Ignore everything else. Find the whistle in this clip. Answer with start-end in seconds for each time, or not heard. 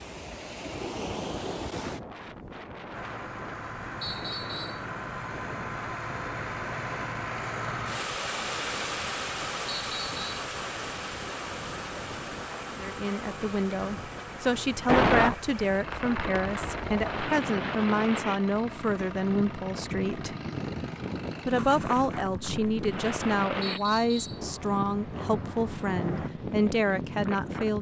4.0-4.8, 9.7-10.2, 23.6-24.4.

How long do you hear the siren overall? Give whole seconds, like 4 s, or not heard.
not heard.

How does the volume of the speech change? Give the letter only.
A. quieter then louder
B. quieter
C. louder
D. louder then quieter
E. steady
E.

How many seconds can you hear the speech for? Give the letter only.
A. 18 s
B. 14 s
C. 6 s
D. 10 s
B.